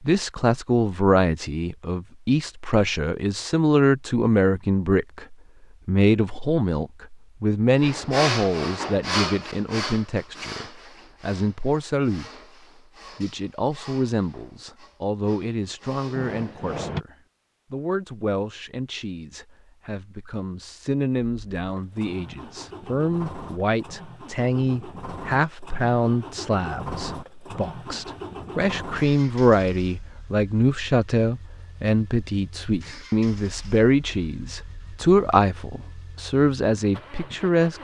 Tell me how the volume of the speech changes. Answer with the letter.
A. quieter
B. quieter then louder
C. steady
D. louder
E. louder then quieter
B.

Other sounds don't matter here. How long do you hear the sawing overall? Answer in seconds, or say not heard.
9 s.